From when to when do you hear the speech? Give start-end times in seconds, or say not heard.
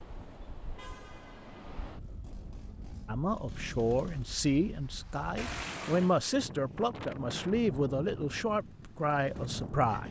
3.0-10.0.